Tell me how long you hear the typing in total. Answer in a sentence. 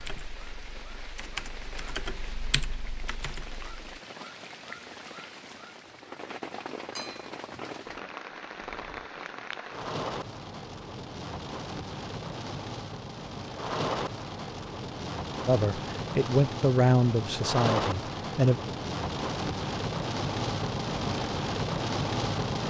You can hear the typing for 4 seconds altogether.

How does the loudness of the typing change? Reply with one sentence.
The loudness of the typing goes up, then down.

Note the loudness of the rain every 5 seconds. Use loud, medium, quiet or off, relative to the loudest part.
quiet, medium, medium, loud, loud.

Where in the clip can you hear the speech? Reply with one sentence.
The speech can be heard from 15.4 to 18.6 s.